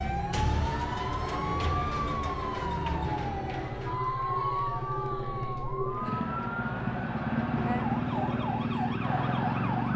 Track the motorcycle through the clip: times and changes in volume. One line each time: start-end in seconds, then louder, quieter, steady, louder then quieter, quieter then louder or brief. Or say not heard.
0.0-9.9 louder.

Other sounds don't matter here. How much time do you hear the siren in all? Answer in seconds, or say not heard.
10 s.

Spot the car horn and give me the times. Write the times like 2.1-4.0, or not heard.
not heard.